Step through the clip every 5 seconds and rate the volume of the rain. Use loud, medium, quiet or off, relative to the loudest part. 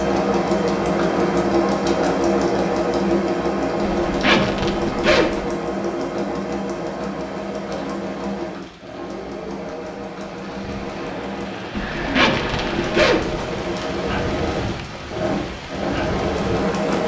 off, quiet, loud, loud.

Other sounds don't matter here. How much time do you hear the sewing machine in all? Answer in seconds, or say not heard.
17 s.